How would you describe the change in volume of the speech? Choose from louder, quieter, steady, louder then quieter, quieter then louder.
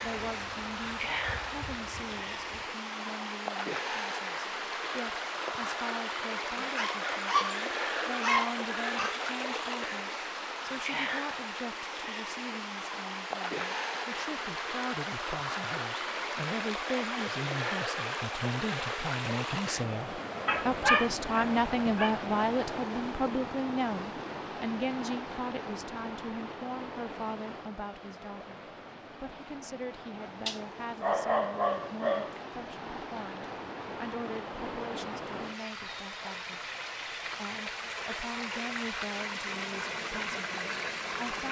louder then quieter.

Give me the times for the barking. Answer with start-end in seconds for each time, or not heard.
6.5-9.2, 20.4-22.1, 30.4-32.4.